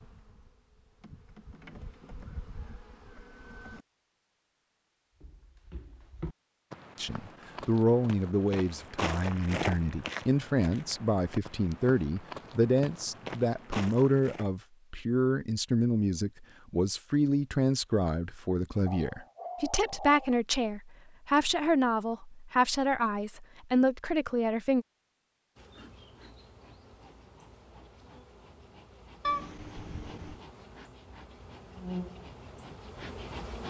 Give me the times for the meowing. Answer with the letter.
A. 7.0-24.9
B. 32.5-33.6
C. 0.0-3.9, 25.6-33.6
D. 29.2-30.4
D.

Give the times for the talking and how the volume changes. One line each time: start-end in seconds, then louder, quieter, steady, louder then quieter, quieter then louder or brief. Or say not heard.
7.0-24.9 steady.